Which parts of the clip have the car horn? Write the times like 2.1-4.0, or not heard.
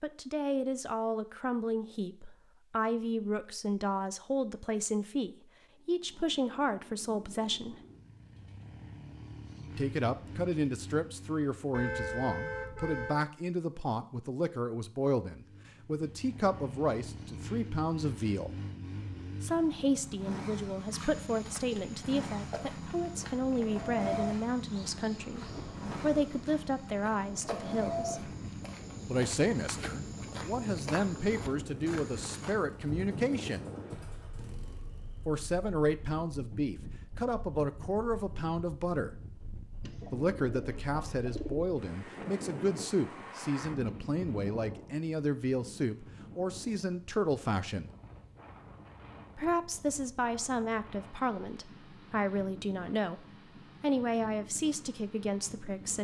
11.7-13.2.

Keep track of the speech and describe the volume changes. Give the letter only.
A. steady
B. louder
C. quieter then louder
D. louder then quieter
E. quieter
A.